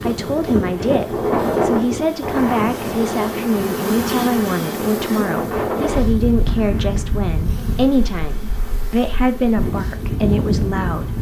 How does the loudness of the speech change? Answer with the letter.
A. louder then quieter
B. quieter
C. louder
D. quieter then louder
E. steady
E.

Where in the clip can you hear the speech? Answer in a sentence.
The speech can be heard from 0.0 to 11.1 s.